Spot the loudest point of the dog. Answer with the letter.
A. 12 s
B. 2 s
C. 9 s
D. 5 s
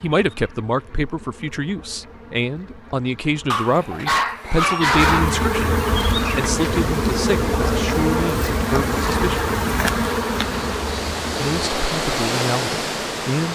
D.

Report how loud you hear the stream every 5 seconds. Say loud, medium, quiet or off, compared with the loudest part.
off, medium, loud.